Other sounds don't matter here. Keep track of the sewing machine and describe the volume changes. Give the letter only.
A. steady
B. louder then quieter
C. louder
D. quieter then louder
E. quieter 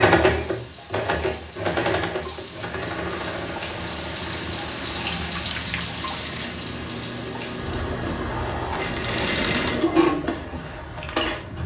D.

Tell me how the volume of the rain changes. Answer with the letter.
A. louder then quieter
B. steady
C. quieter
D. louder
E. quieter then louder
A.